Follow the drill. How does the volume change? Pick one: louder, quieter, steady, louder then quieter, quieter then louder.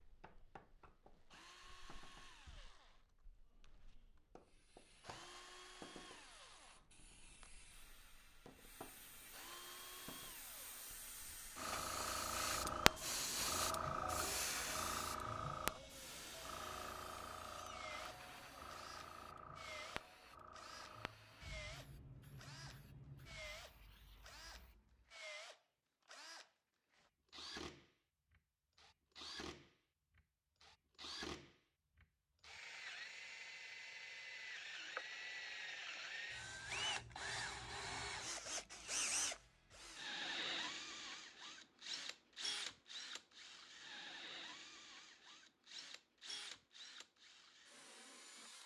louder.